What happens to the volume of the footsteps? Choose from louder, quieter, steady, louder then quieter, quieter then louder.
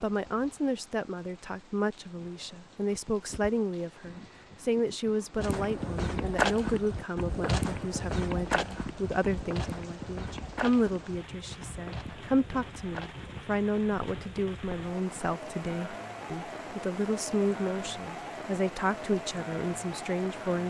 quieter.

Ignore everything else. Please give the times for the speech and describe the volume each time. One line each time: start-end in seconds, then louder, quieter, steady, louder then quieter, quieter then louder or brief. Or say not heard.
0.0-20.6 steady.